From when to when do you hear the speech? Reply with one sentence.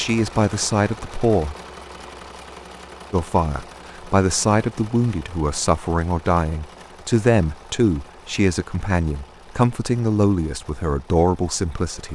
The speech can be heard from 0.0 to 1.6 s and from 3.1 to 12.1 s.